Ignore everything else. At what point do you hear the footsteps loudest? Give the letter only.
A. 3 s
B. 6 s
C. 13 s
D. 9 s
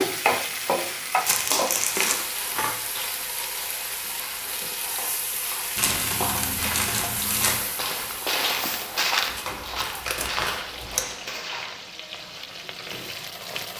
D.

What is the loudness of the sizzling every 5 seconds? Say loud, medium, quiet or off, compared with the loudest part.
loud, medium, medium.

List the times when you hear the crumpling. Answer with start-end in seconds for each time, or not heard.
1.2-2.2, 5.8-7.6, 9.3-11.1.